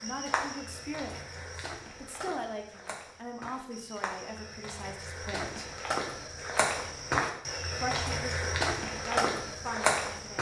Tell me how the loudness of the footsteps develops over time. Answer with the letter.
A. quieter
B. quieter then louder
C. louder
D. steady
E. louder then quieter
C.